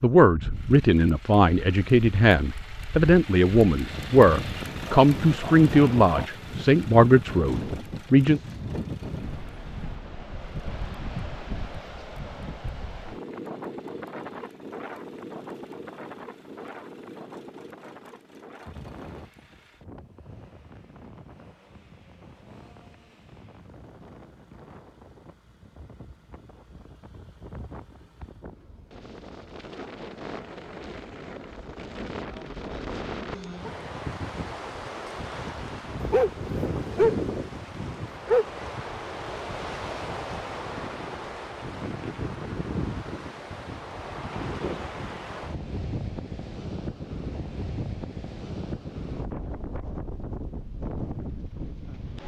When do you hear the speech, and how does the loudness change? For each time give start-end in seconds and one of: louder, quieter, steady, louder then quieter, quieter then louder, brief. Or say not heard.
0.0-8.4 steady.